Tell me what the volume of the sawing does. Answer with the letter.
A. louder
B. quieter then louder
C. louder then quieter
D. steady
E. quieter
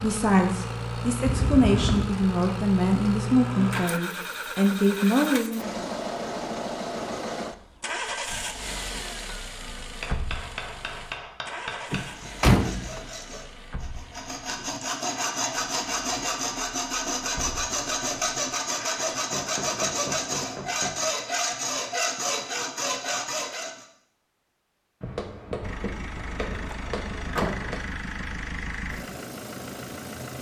A.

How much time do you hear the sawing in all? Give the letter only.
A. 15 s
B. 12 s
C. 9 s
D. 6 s
B.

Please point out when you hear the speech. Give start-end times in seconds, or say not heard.
0.0-5.9.